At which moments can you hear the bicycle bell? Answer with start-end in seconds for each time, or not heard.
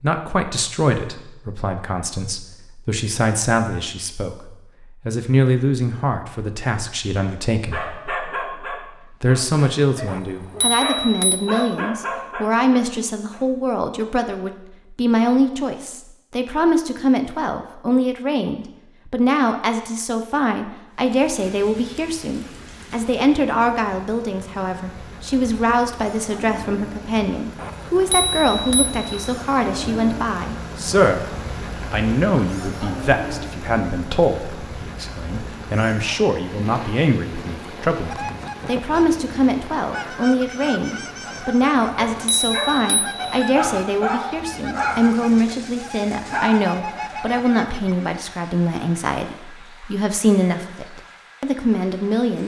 10.1-11.7, 27.6-29.4, 41.8-43.2.